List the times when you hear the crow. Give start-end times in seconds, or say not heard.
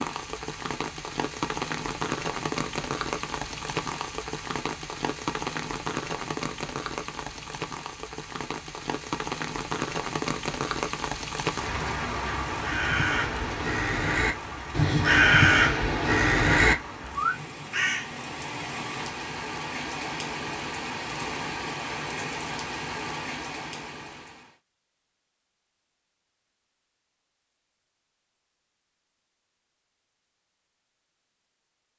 12.5-18.1.